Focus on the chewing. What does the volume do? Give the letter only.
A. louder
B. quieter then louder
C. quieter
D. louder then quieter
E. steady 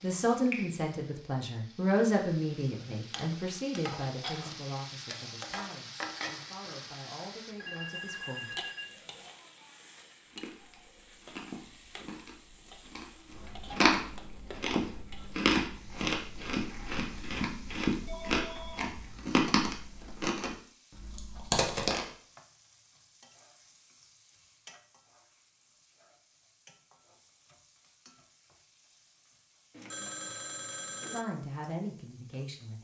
A.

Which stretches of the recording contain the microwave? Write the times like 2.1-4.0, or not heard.
not heard.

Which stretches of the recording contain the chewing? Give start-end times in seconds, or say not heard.
10.3-22.1.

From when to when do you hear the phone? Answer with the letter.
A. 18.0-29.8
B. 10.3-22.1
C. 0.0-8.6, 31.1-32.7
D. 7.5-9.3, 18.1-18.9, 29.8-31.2
D.